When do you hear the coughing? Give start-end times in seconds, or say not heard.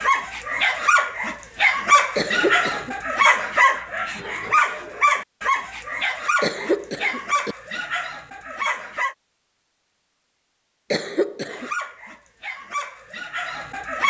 2.1-3.0, 6.4-7.5, 10.9-11.7.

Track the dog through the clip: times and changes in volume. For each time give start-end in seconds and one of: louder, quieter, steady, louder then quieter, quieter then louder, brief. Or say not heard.
0.0-9.2 quieter
11.5-14.0 brief.